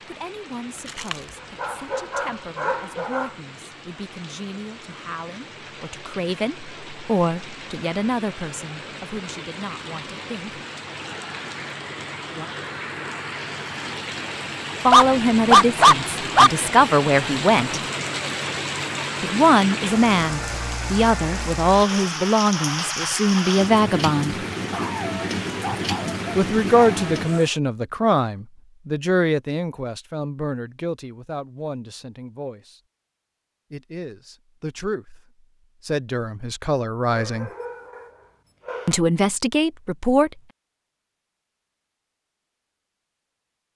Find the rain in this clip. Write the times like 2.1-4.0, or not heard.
0.0-27.6.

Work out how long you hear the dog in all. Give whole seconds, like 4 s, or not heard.
9 s.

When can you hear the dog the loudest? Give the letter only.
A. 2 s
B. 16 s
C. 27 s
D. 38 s
B.